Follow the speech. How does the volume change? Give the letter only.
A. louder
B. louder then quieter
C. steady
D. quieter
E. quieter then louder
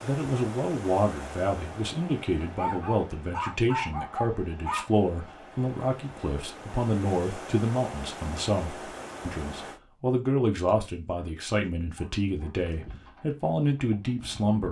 C.